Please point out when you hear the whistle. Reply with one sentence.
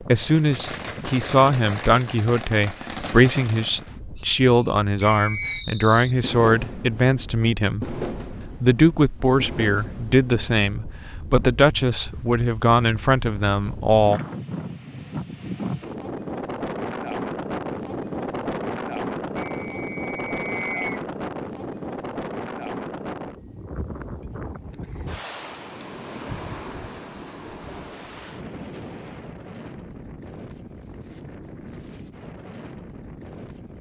You can hear the whistle from 5.0 to 5.7 s and from 19.6 to 20.9 s.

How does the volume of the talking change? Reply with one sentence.
The loudness of the talking stays about the same.